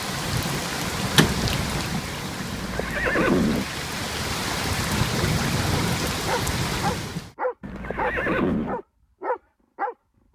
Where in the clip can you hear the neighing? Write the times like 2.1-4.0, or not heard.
2.5-3.7, 7.6-8.8.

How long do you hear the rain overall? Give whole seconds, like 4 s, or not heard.
7 s.